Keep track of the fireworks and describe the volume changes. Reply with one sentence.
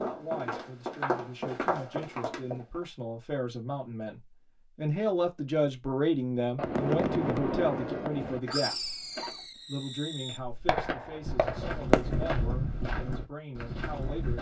The volume of the fireworks goes down, then up.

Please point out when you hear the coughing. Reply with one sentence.
The coughing can be heard from 8.4 to 9.4 s.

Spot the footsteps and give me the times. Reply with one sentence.
The footsteps can be heard from 0.0 to 2.9 s and from 10.2 to 14.3 s.